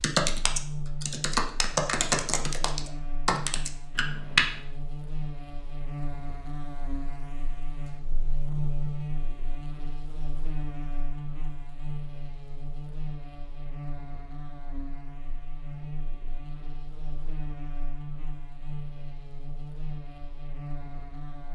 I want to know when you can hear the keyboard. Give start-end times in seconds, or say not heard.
0.0-4.5.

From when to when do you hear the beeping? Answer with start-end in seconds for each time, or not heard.
not heard.